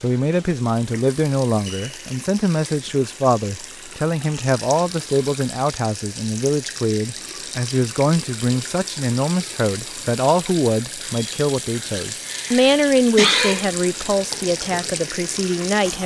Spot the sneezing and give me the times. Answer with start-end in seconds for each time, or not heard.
12.2-13.7.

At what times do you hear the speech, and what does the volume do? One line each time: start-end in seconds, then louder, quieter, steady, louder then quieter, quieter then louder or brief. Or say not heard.
0.0-16.0 steady.